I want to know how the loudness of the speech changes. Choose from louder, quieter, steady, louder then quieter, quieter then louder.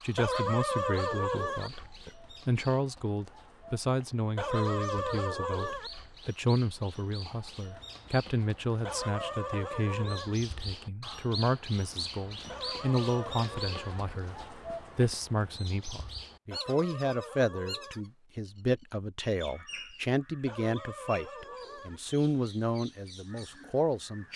steady.